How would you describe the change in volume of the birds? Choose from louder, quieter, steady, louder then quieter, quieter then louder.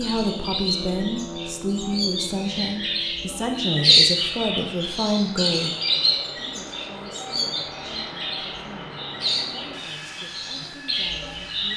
louder then quieter.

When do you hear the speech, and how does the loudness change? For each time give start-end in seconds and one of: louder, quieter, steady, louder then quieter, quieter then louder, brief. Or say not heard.
0.0-11.7 quieter.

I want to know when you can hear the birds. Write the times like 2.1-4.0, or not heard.
0.0-11.7.